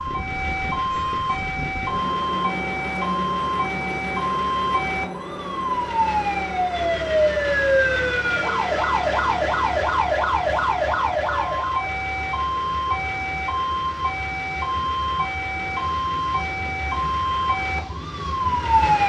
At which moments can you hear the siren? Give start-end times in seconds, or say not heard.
0.0-19.0.